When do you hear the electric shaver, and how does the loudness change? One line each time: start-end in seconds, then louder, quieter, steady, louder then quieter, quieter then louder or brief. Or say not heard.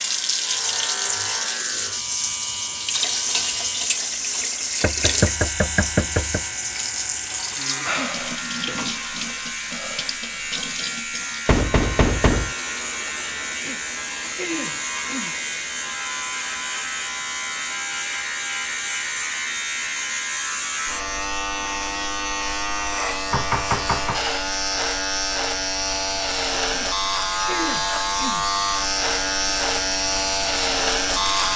0.0-31.5 louder.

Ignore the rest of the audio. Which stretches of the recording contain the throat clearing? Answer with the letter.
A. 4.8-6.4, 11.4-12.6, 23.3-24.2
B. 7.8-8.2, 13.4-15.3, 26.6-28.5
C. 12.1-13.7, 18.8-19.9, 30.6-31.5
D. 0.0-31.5
B.